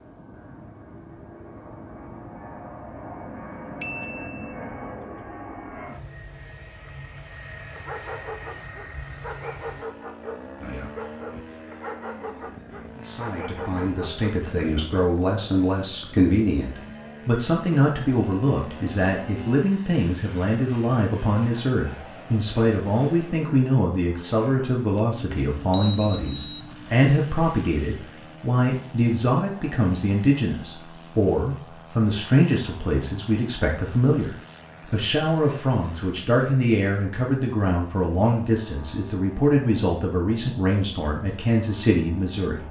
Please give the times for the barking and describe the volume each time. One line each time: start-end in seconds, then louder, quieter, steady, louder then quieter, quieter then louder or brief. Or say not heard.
7.8-15.1 steady.